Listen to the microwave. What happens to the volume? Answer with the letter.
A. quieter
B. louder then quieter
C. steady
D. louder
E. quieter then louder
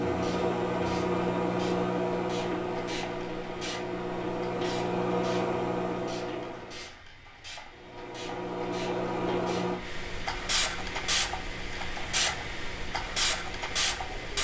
A.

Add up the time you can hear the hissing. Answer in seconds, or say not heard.
14 s.